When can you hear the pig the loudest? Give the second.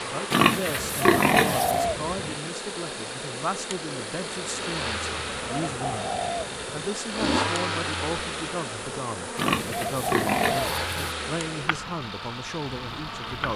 1 s.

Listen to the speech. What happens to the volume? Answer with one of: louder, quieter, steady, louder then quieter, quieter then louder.
steady.